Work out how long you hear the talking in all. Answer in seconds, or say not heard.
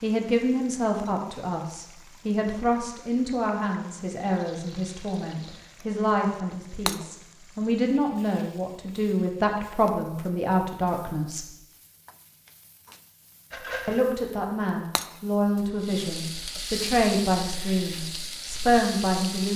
17 s.